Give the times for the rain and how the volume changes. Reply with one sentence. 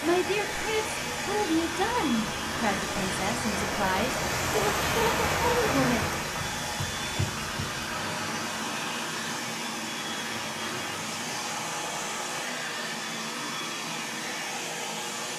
You can hear the rain from 0.0 to 12.4 s, getting louder then quieter.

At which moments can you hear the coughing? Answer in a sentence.
You can't hear the coughing here.